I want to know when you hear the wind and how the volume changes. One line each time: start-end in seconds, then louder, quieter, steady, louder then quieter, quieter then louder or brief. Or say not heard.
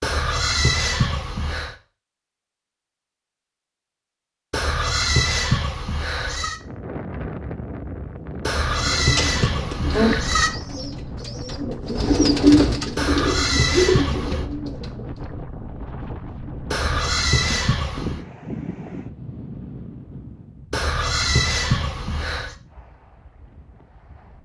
6.5-24.3 quieter.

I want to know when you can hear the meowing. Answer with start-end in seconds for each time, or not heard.
9.0-10.6.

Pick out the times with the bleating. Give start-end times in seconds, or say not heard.
0.0-1.8, 4.5-6.6, 8.4-10.5, 12.9-14.4, 16.7-18.2, 20.7-22.6.